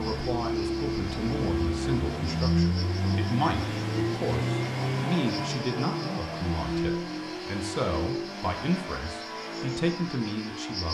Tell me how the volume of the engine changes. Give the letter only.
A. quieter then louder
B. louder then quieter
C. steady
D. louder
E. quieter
E.